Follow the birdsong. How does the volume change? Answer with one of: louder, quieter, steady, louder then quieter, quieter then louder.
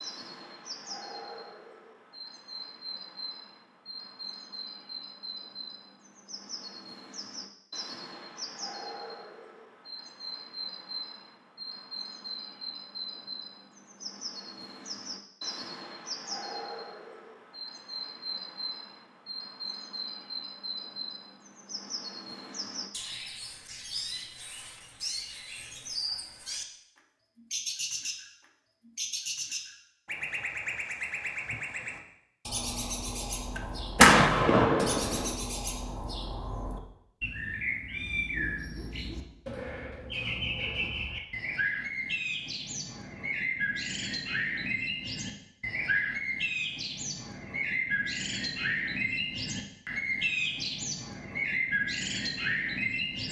louder.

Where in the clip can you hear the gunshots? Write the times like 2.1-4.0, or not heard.
33.5-35.4.